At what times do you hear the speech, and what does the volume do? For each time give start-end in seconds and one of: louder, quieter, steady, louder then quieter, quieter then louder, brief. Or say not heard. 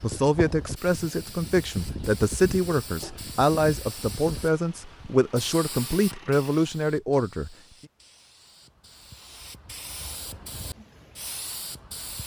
0.0-7.5 steady.